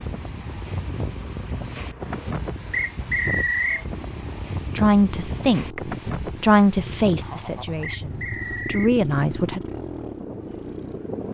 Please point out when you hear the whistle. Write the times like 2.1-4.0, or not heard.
2.7-3.9, 7.8-8.9.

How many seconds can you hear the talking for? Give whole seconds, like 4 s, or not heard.
5 s.